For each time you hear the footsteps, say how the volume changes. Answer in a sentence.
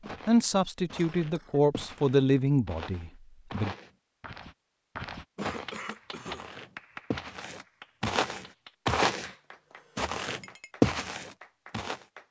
The footsteps can be heard from 0.0 to 9.3 s, getting louder; and briefly from 9.9 to 12.0 s.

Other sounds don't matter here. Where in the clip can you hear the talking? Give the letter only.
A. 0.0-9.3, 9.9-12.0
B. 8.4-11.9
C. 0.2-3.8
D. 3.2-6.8
C.